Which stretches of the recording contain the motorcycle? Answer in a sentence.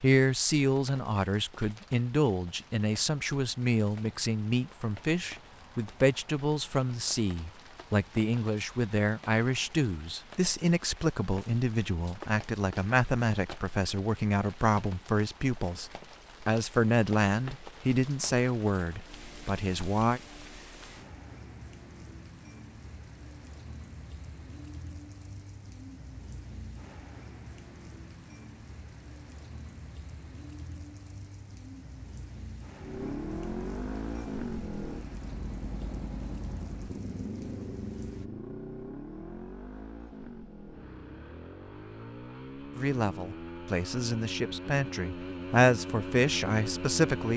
You can hear the motorcycle from 32.8 to 47.3 s.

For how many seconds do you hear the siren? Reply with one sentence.
The siren can't be heard in this clip.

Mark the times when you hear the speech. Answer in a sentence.
You can hear the speech from 0.0 to 20.2 s and from 42.8 to 47.3 s.